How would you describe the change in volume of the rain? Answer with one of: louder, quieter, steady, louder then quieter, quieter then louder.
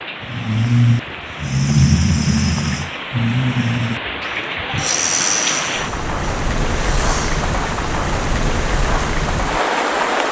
louder.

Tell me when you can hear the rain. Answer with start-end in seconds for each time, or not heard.
0.0-10.2.